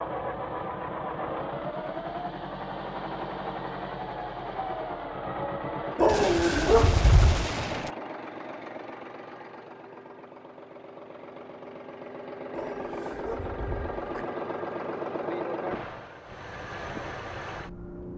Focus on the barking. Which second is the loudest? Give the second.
6 s.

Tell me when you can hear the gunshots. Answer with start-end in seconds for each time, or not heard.
6.0-8.0.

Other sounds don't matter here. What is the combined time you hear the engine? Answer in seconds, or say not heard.
18 s.